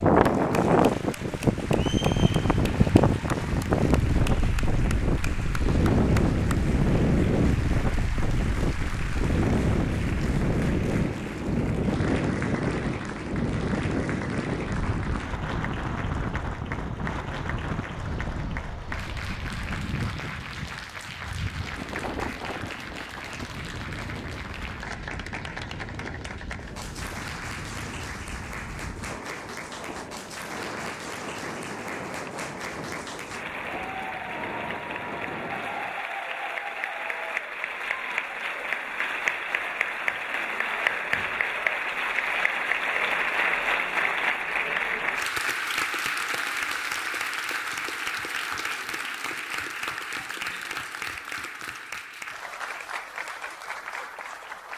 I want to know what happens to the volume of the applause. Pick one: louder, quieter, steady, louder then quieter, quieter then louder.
louder.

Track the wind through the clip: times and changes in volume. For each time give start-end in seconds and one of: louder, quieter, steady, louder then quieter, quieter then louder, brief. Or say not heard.
0.0-36.0 quieter.